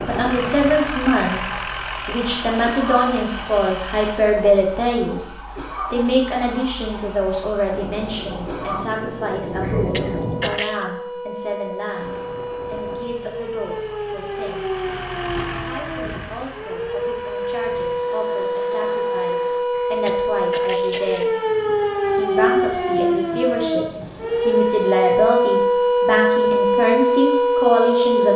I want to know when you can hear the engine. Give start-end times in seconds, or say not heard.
0.0-4.2, 11.9-19.6.